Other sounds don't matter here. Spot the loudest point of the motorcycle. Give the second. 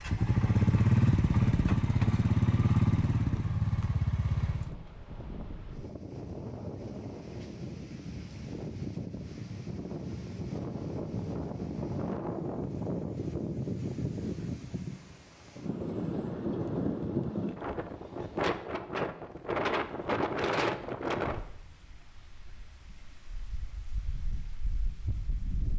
1 s.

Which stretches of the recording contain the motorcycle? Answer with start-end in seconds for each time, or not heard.
0.0-4.8.